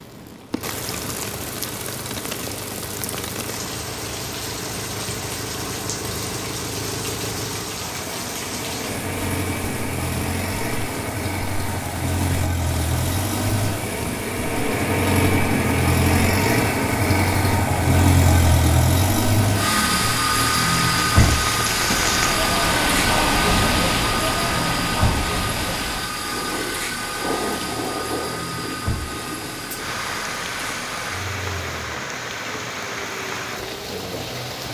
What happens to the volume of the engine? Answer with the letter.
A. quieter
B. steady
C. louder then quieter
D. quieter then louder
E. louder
C.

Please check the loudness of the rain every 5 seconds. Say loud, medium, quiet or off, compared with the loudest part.
medium, medium, medium, medium, loud, medium, medium.